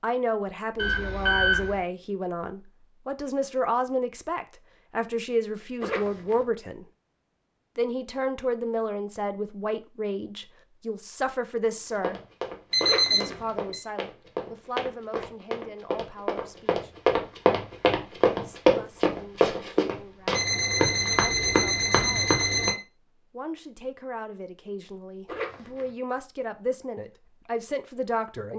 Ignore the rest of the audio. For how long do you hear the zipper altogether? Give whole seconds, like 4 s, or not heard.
2 s.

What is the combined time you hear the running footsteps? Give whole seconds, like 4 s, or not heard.
11 s.